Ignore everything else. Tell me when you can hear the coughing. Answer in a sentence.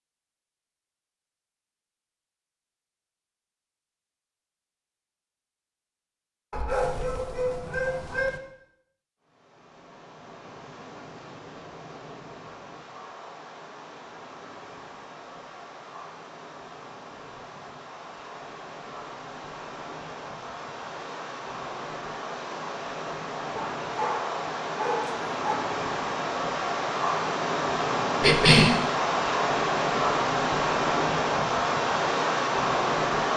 The coughing can be heard from 28.2 to 28.8 s.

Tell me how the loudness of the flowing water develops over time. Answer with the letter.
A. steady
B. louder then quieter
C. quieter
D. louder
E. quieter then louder
D.